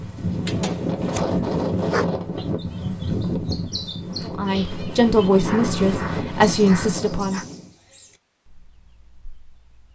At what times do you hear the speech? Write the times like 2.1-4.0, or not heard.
4.2-7.4.